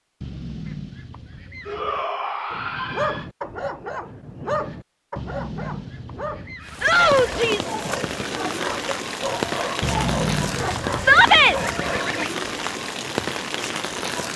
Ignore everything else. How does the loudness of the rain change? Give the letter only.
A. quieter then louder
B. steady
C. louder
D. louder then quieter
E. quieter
B.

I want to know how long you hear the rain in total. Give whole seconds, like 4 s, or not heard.
8 s.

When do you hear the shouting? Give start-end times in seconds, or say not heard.
1.6-3.2, 6.8-7.8, 10.9-11.6.